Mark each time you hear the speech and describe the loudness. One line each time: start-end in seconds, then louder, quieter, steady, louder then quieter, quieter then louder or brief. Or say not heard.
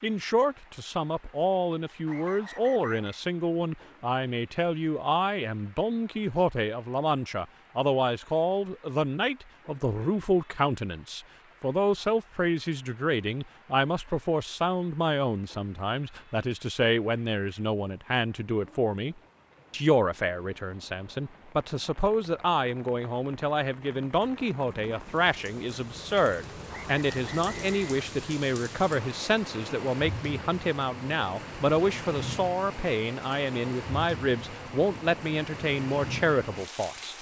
0.0-37.1 steady.